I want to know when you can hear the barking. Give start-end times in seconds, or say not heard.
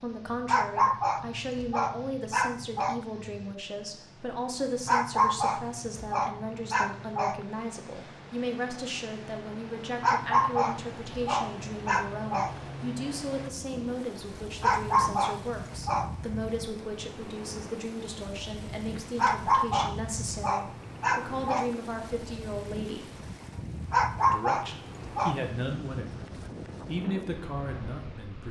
0.5-3.0, 4.8-7.4, 10.0-12.6, 14.6-16.1, 19.1-21.8, 23.9-25.4.